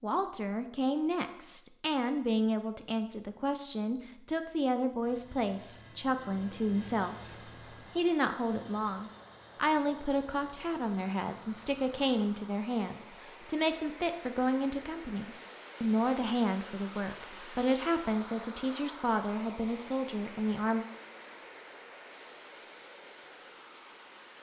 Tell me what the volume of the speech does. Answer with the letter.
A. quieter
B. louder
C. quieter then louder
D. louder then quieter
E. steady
E.